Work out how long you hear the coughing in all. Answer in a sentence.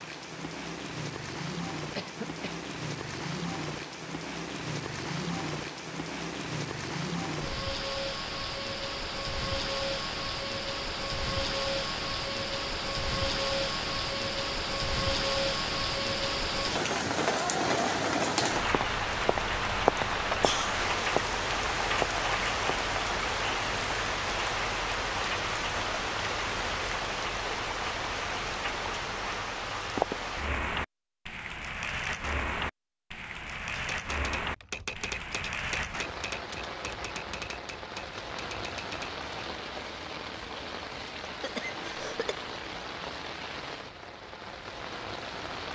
The coughing can be heard for 2 seconds in total.